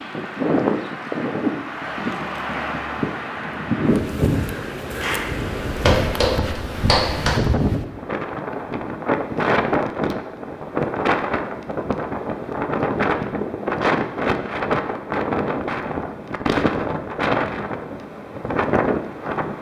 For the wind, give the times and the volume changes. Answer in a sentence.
You can hear the wind from 0.0 to 19.5 s, at a steady volume.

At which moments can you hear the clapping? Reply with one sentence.
You can hear the clapping from 5.0 to 7.4 s.